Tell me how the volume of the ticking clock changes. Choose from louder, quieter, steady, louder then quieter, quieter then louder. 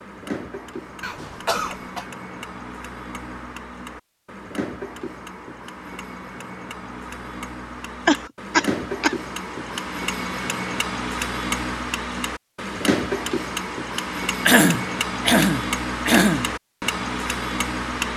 louder.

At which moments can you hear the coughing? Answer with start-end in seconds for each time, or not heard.
1.0-2.0, 8.1-9.2, 14.4-16.5.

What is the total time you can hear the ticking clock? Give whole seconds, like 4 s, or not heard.
18 s.